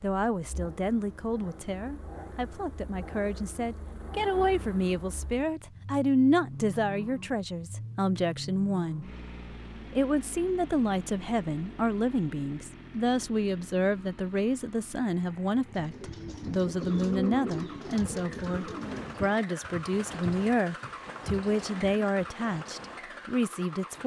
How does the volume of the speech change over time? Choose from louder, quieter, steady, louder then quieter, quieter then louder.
steady.